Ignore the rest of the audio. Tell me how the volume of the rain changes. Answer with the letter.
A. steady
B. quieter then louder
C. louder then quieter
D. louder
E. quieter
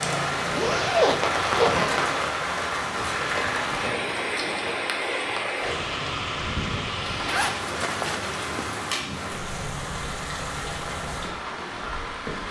E.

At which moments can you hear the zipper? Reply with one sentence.
The zipper can be heard from 0.6 to 2.0 s and from 7.0 to 8.7 s.